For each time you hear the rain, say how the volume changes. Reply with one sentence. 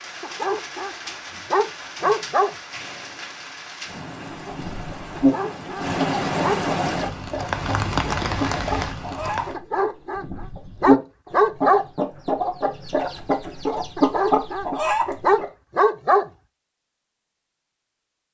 The rain can be heard from 0.0 to 9.6 s, getting louder.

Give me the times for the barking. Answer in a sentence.
You can hear the barking from 0.2 to 0.9 s, from 1.5 to 2.5 s, from 5.2 to 6.6 s, from 9.5 to 11.8 s and from 13.9 to 16.3 s.